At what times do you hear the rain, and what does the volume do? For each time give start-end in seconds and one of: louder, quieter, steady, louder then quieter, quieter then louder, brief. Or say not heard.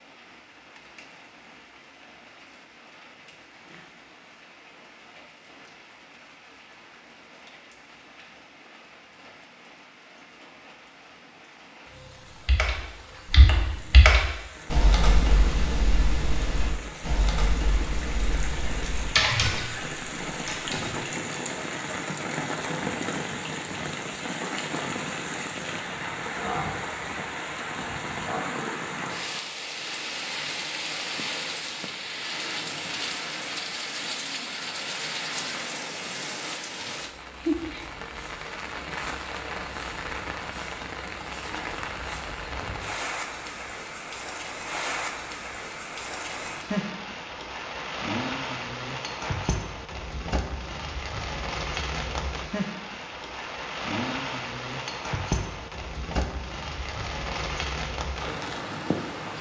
0.0-59.3 louder.